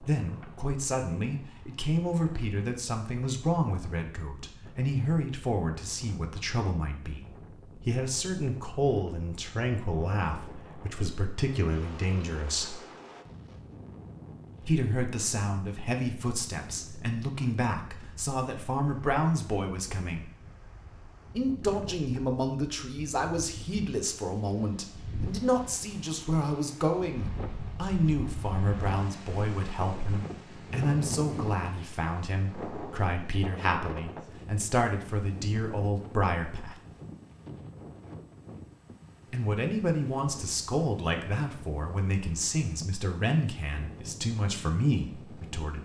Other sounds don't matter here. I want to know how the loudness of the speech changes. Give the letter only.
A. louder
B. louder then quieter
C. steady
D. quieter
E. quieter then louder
C.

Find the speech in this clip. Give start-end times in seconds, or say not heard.
0.0-12.8, 14.6-20.2, 21.4-36.8, 39.3-45.8.